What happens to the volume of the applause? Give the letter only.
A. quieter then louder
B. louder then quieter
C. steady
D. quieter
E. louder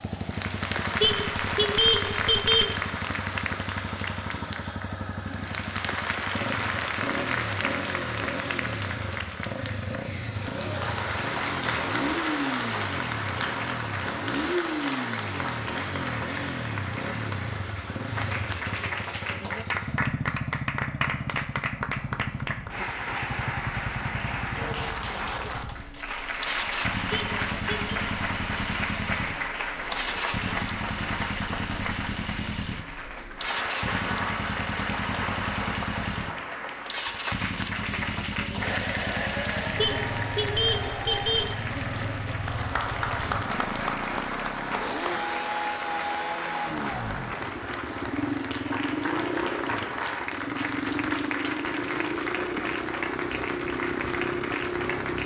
C.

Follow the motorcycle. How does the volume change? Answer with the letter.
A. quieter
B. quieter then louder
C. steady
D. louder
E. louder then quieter
C.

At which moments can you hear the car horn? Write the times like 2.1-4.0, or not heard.
1.0-2.8, 27.1-27.9, 39.8-41.5.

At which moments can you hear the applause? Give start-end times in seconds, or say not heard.
0.0-55.2.